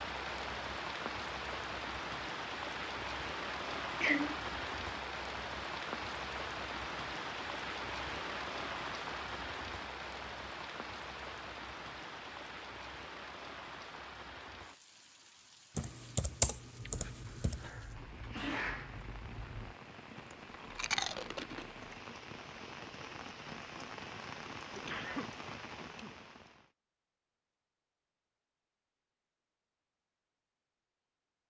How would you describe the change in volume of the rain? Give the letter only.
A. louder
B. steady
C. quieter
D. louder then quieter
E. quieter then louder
E.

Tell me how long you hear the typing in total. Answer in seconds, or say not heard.
2 s.